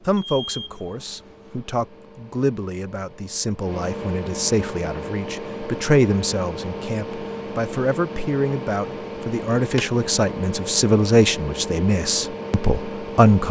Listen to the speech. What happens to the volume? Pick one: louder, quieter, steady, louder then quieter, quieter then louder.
louder.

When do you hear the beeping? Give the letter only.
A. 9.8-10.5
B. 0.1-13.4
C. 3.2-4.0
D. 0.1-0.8
D.